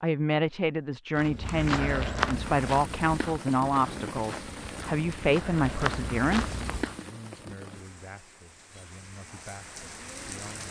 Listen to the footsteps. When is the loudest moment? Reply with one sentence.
The volume of the footsteps peaks at 2 seconds.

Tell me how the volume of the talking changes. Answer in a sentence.
The volume of the talking goes down.